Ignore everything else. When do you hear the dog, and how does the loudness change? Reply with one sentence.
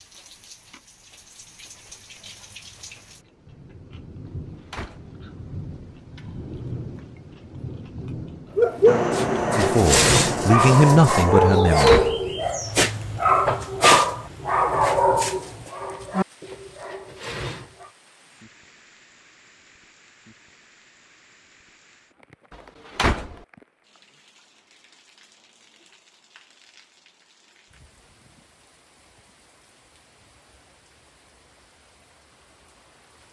You can hear the dog from 8.6 to 17.9 s, getting quieter.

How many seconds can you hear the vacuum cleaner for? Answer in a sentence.
The vacuum cleaner can be heard for 3 seconds in total.